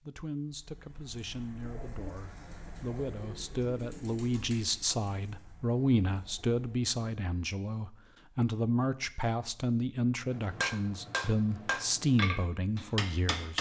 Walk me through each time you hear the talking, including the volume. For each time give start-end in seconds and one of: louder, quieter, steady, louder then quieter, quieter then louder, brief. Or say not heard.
0.0-13.5 louder.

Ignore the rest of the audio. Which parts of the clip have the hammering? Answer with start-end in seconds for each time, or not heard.
10.3-13.5.